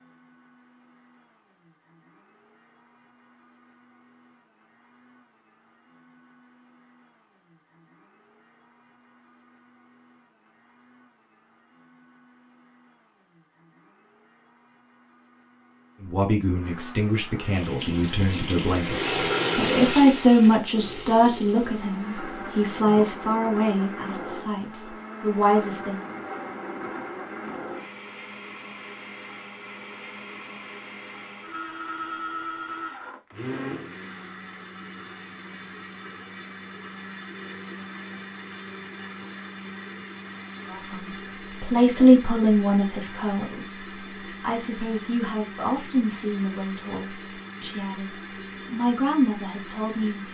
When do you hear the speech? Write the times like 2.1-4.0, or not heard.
16.0-26.1, 40.6-50.2.